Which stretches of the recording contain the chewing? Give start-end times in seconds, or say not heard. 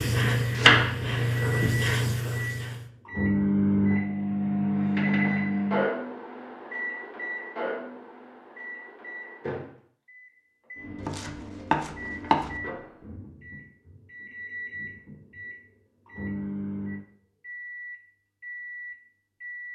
not heard.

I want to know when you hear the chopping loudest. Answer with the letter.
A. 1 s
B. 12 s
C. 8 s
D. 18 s
A.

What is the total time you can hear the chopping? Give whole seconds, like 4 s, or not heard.
3 s.